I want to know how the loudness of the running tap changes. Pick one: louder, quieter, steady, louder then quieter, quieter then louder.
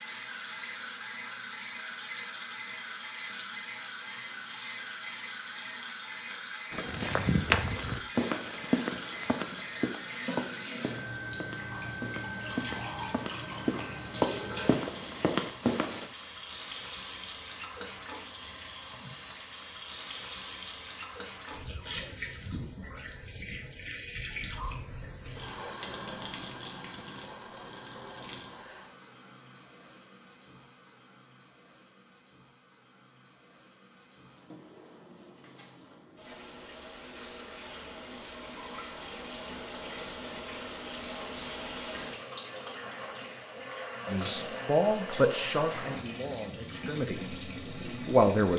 quieter then louder.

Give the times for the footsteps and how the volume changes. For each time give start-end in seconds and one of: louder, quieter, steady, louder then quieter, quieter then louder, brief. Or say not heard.
6.7-16.1 quieter then louder.